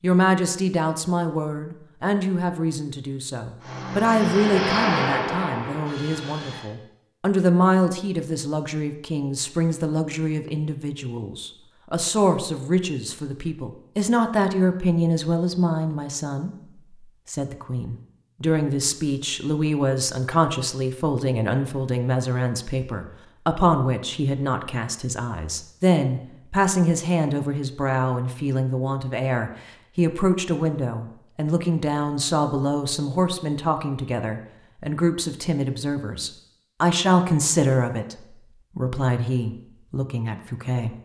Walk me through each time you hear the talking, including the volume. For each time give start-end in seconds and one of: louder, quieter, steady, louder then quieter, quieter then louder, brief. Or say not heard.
0.0-41.0 steady.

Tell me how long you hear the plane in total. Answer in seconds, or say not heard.
3 s.